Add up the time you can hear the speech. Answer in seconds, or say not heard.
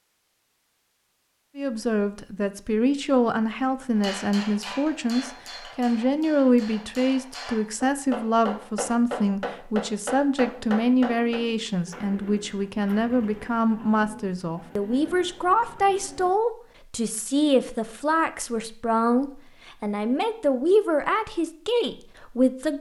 21 s.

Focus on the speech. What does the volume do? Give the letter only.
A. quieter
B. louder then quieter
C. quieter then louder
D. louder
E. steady
E.